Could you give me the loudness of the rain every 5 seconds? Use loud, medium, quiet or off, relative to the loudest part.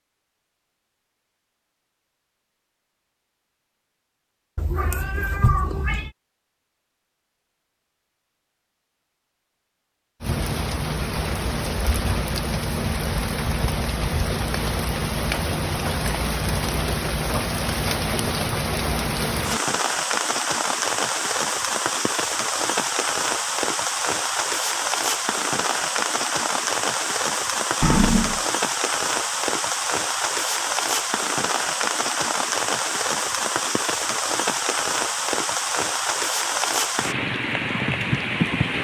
off, off, loud, loud, loud, loud, loud, loud.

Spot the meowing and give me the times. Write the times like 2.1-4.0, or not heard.
4.5-6.1, 27.8-28.4.